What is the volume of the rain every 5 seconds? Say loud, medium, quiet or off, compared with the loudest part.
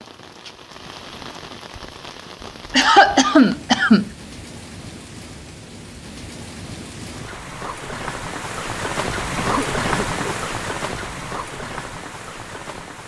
medium, loud, loud.